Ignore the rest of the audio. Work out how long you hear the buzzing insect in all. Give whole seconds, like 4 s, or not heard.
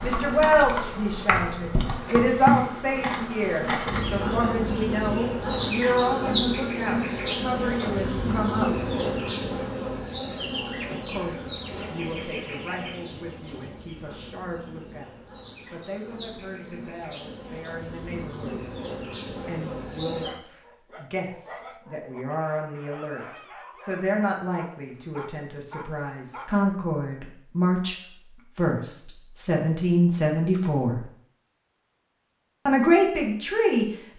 20 s.